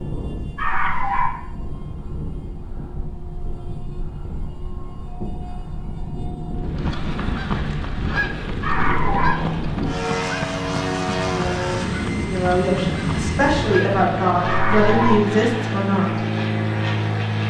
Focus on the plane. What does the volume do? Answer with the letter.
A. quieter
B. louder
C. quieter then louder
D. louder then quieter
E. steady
B.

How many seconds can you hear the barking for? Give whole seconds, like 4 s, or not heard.
2 s.